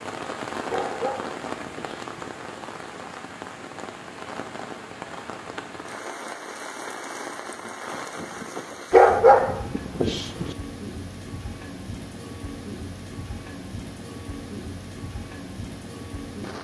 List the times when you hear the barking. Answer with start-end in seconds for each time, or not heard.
0.7-2.0, 8.9-10.6.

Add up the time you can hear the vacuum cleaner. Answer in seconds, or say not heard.
not heard.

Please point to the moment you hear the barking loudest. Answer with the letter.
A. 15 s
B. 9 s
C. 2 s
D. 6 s
B.